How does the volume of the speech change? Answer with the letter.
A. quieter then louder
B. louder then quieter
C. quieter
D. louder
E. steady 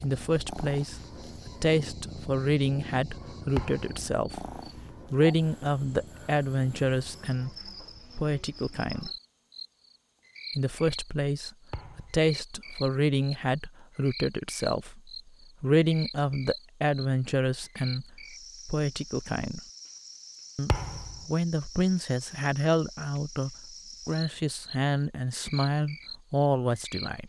E.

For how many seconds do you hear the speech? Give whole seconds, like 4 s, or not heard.
25 s.